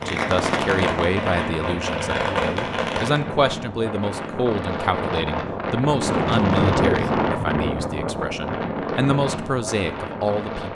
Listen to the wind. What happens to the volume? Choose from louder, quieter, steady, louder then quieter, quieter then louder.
louder then quieter.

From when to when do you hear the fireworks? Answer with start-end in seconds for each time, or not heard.
0.0-3.2.